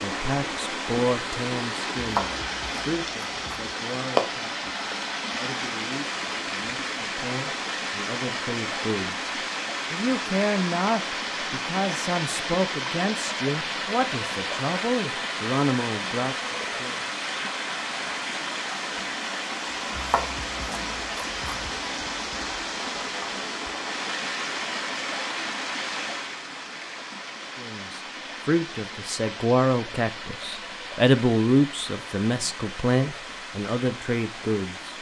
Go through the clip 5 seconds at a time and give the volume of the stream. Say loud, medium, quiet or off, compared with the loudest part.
loud, loud, loud, loud, loud, medium, medium.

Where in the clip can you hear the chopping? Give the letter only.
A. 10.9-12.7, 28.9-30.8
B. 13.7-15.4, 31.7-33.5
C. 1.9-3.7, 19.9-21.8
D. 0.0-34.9
C.